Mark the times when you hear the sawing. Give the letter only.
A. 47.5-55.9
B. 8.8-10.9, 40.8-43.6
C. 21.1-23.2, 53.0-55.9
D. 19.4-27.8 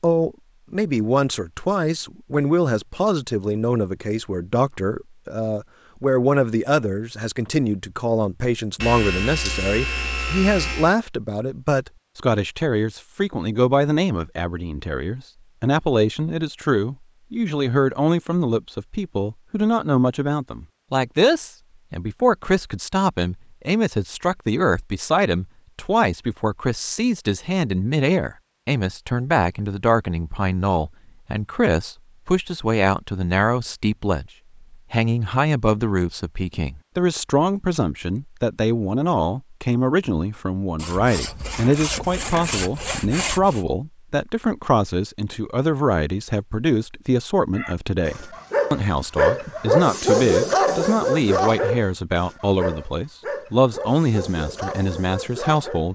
B.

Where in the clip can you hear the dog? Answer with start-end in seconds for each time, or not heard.
47.5-55.9.